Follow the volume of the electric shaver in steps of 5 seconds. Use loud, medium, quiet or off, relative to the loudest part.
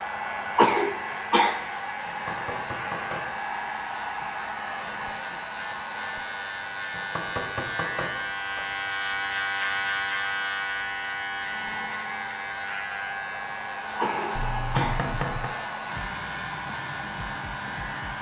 medium, loud, loud, medium.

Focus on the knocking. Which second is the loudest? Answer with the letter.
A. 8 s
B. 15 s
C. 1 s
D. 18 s
B.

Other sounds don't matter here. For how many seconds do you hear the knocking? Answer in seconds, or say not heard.
4 s.